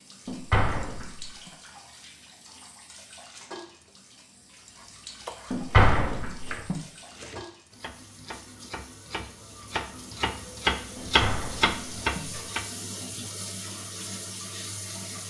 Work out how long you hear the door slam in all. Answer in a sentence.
You can hear the door slam for 4 seconds altogether.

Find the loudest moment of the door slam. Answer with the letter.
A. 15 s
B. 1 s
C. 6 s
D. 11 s
C.